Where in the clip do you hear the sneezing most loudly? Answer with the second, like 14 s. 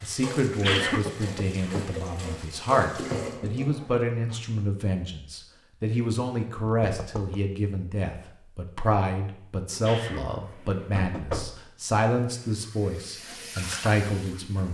1 s.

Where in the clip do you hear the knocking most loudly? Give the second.
11 s.